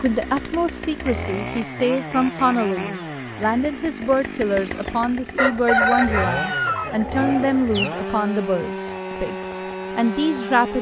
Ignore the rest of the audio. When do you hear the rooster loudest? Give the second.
6 s.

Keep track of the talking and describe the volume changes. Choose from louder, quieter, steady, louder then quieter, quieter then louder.
steady.